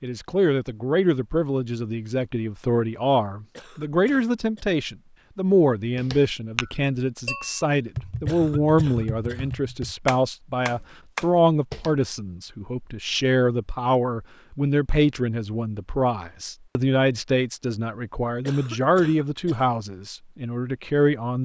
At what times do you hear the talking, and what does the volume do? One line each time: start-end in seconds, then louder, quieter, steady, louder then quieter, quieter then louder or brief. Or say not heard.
0.0-21.4 steady.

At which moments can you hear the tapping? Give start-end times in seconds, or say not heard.
6.0-11.9.